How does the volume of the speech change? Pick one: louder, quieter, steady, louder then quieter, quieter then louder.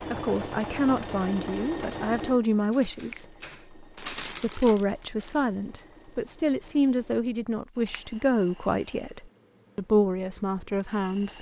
steady.